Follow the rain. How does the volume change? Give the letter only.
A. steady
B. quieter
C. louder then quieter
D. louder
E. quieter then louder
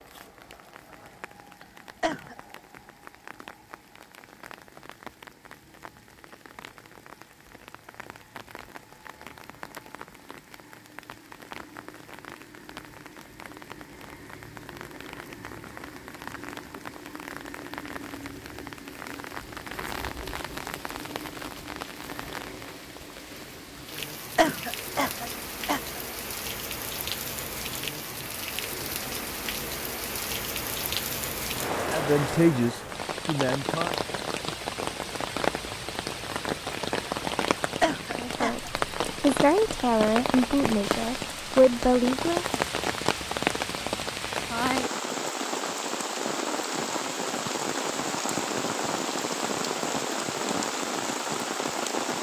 D.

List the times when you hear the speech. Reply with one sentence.
The speech can be heard from 31.9 to 34.0 s and from 38.1 to 42.6 s.